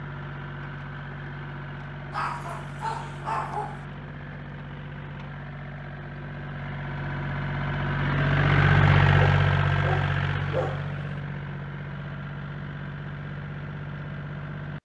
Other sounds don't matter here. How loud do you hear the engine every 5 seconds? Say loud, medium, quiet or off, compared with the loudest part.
quiet, loud, medium.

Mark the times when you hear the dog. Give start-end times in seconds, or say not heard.
2.1-3.9, 9.1-10.9.